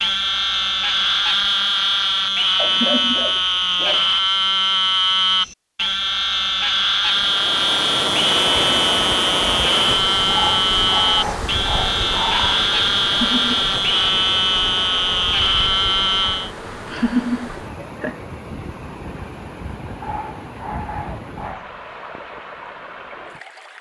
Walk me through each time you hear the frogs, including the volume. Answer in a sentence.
You can hear the frogs from 0.0 to 16.5 s, at a steady volume.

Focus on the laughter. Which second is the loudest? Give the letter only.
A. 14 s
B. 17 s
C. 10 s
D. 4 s
B.